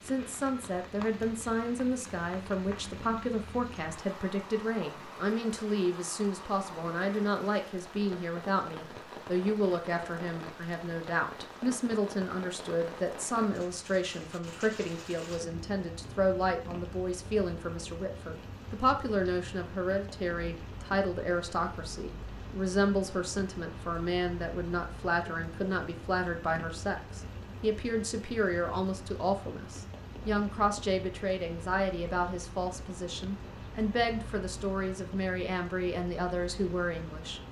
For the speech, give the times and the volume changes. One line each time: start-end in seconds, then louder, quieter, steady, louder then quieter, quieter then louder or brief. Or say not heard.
0.1-37.4 steady.